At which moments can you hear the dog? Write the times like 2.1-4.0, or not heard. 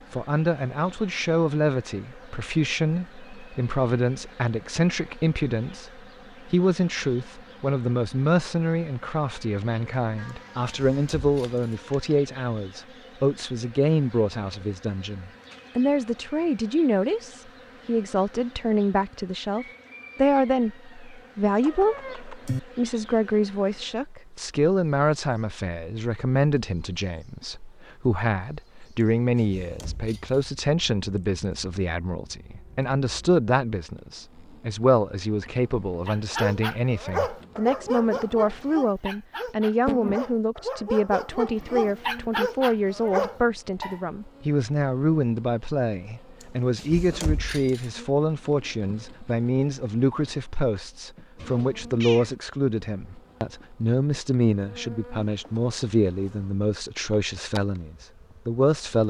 36.0-44.0.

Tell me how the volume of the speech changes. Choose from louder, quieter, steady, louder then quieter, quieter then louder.
steady.